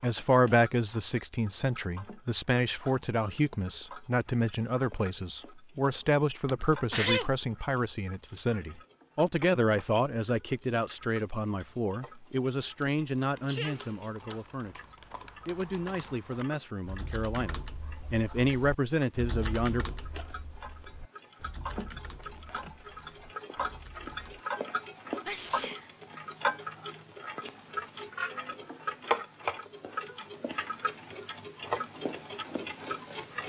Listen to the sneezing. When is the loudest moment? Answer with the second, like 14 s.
7 s.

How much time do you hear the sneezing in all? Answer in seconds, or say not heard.
2 s.